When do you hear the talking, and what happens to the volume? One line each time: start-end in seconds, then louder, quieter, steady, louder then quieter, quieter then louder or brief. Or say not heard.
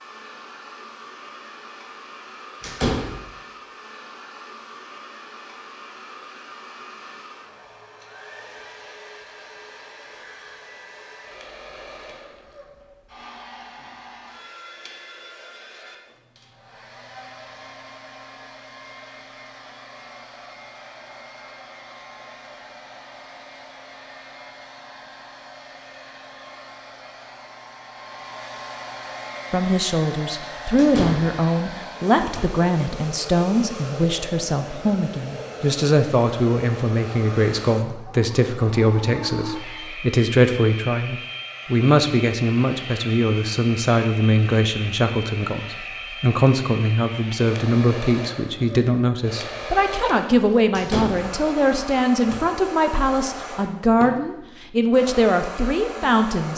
29.5-56.5 steady.